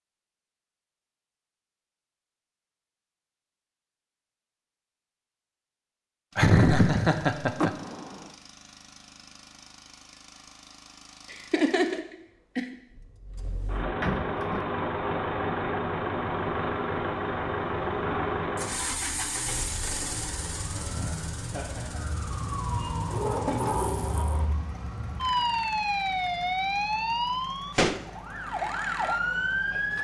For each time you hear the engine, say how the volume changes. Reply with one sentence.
The engine can be heard from 6.3 to 29.9 s, getting louder then quieter.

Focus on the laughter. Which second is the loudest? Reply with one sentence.
The volume of the laughter peaks at 7 seconds.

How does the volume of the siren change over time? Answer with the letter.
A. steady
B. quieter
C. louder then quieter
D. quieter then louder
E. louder
E.